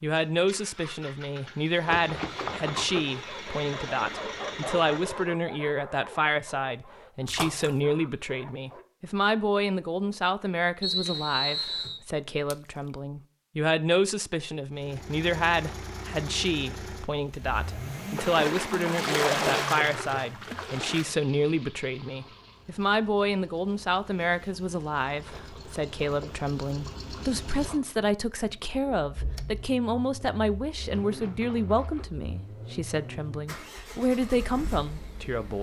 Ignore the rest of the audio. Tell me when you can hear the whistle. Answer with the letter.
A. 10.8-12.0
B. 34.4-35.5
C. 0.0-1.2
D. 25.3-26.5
A.